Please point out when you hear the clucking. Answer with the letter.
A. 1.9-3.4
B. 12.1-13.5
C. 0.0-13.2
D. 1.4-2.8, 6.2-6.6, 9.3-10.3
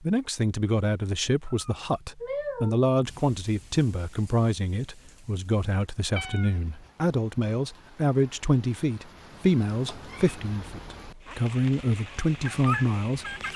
B.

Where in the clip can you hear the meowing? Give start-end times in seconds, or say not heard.
1.4-2.8, 6.2-6.6, 9.3-10.3.